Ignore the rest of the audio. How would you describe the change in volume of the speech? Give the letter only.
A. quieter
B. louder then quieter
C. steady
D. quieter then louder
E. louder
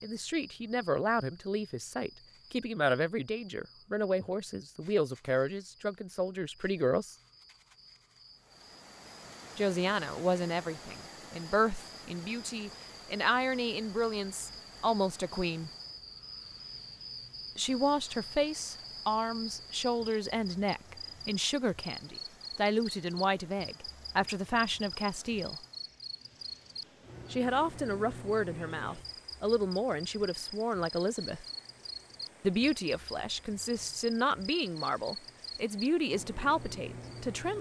C.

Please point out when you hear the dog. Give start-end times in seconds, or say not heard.
not heard.